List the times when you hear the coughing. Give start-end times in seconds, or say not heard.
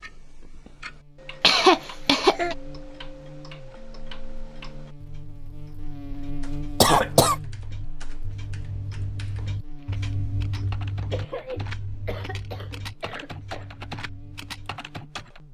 1.4-2.5, 6.8-7.3, 11.1-13.7.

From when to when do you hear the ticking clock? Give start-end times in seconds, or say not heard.
0.0-15.3.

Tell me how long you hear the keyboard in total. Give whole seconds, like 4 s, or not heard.
9 s.